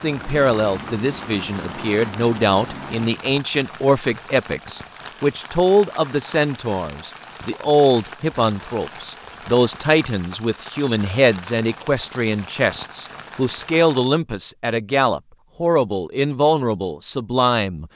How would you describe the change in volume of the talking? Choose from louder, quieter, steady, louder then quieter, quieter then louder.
steady.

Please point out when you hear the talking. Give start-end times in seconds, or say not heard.
0.0-17.9.